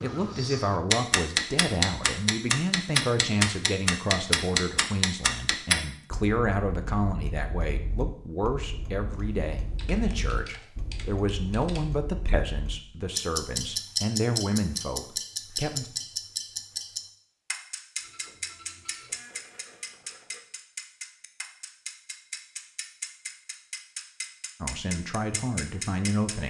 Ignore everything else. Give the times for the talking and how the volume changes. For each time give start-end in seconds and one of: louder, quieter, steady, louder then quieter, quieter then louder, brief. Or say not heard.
0.0-15.9 steady
24.6-26.4 brief.